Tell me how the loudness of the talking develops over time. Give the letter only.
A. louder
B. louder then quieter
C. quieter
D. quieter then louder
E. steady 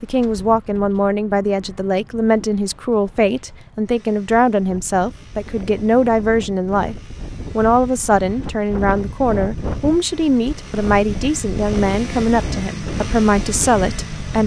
E.